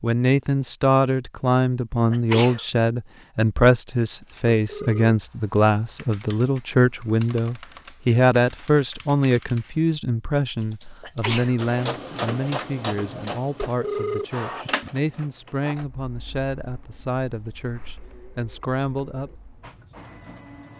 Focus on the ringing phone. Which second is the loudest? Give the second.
14 s.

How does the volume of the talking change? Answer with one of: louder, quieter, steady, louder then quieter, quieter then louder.
quieter.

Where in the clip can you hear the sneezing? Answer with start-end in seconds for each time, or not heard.
2.1-2.6, 11.0-11.6.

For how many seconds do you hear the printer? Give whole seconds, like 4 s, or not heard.
9 s.